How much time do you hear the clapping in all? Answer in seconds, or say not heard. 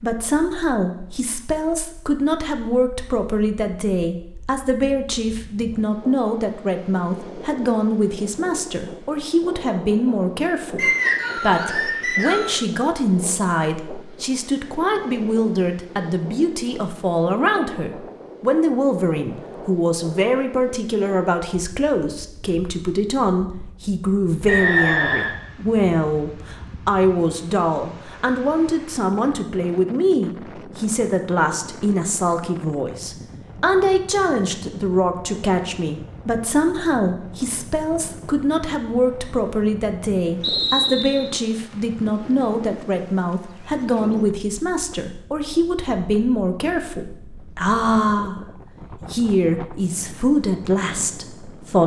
not heard.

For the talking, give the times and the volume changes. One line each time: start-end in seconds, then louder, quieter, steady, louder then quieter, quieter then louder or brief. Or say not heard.
0.0-51.8 steady.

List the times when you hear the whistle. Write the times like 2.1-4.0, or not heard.
10.8-12.6, 24.4-25.3, 40.4-41.3.